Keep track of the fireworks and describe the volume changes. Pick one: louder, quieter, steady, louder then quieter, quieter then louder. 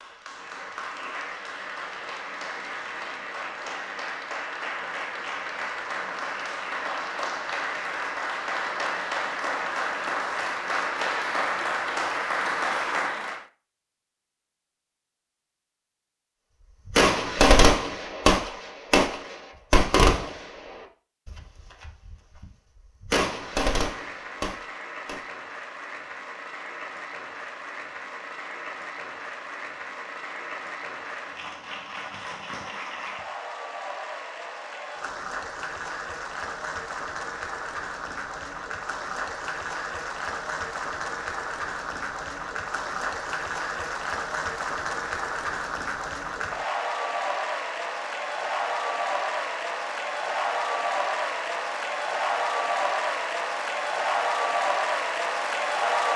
quieter then louder.